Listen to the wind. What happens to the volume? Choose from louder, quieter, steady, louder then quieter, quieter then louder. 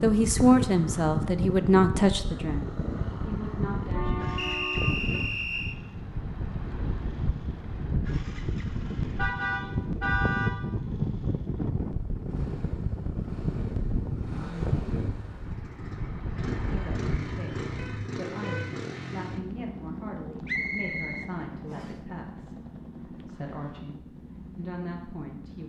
steady.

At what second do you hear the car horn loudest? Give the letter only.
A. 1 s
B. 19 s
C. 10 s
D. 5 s
C.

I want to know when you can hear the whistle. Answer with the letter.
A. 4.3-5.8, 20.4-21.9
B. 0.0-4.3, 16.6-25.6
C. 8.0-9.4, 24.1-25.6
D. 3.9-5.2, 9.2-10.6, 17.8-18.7
A.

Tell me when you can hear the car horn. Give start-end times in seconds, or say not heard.
3.9-5.2, 9.2-10.6, 17.8-18.7.